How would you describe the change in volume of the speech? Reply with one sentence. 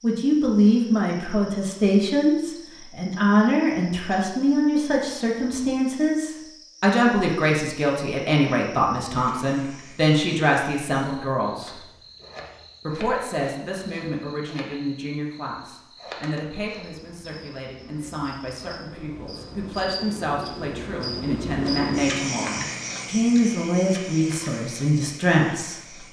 The loudness of the speech goes down, then up.